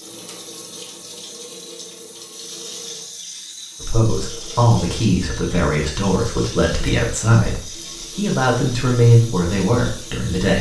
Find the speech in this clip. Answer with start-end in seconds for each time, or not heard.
3.8-10.5.